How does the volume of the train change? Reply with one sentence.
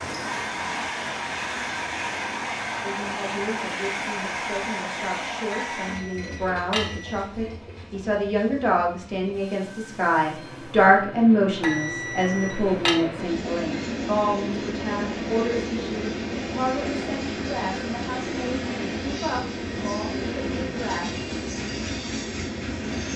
The loudness of the train goes down, then up.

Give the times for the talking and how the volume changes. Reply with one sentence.
The talking can be heard from 2.8 to 21.1 s, getting louder then quieter.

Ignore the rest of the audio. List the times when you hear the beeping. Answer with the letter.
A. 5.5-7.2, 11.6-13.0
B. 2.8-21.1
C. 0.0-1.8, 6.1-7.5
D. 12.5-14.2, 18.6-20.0
A.